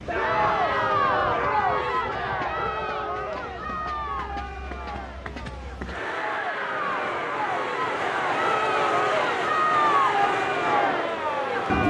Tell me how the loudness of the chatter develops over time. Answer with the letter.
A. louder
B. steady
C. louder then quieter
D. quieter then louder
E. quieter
D.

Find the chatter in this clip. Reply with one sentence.
You can hear the chatter from 0.1 to 11.8 s.